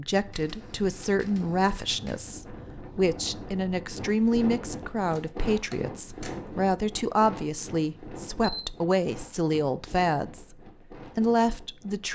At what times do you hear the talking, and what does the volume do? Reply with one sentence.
The talking can be heard from 0.0 to 12.1 s, at a steady volume.